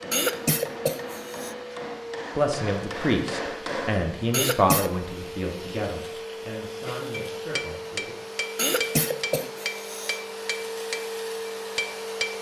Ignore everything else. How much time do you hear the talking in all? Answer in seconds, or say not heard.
6 s.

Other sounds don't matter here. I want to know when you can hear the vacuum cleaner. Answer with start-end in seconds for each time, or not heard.
0.0-12.3.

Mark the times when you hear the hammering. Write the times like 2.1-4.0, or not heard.
0.0-4.1, 6.8-12.3.